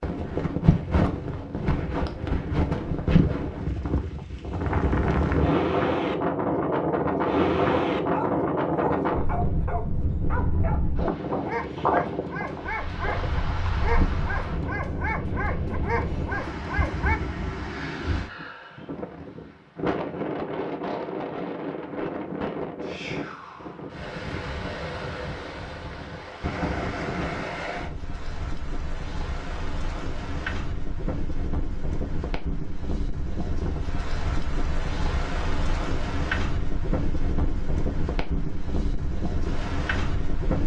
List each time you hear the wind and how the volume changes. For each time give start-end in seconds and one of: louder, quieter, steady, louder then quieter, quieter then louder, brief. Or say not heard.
0.0-40.6 quieter.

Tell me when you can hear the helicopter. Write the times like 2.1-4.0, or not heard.
not heard.